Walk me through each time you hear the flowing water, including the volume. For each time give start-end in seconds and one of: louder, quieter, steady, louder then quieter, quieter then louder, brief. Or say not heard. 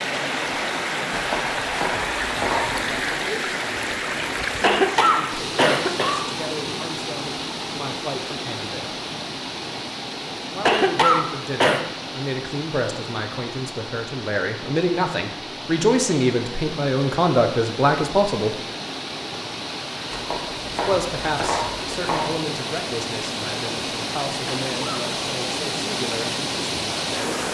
0.0-27.4 quieter then louder.